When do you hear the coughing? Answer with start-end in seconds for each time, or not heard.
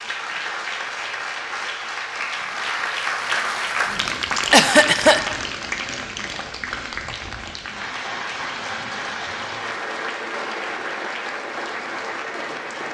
4.5-5.2.